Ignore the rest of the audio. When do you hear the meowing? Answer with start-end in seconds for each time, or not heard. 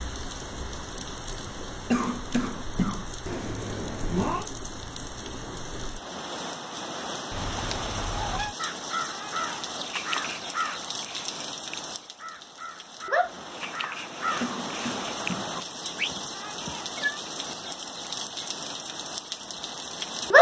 3.2-4.5, 7.3-8.6, 15.9-17.2.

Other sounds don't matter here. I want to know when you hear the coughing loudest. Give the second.
2 s.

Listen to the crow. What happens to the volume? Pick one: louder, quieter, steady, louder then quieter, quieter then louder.
quieter then louder.